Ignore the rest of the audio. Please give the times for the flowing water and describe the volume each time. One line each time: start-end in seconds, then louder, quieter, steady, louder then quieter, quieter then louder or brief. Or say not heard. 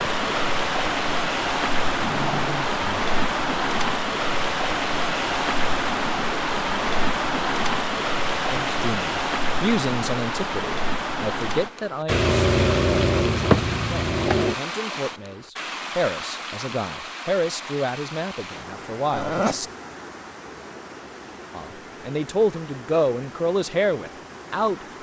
0.0-24.9 quieter.